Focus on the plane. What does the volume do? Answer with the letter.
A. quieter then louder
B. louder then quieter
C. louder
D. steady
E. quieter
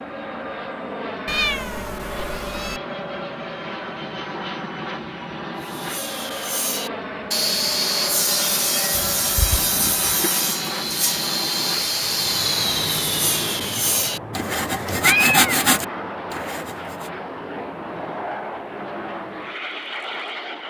D.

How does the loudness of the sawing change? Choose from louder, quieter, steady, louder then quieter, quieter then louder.
steady.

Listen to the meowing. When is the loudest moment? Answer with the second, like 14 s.
15 s.